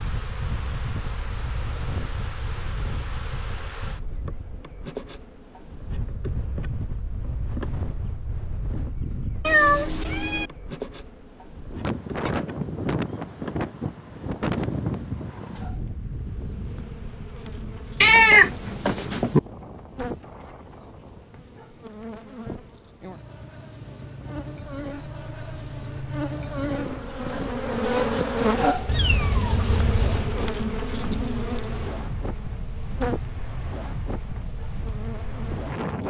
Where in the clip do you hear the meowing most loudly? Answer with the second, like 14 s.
18 s.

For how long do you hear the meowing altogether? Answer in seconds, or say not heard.
4 s.